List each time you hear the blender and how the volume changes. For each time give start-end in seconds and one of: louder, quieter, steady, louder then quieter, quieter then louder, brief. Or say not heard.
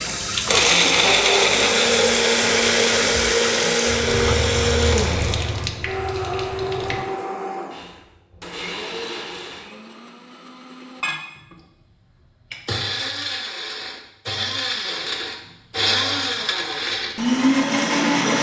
0.0-18.3 quieter then louder.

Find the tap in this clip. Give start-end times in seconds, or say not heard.
0.0-7.0.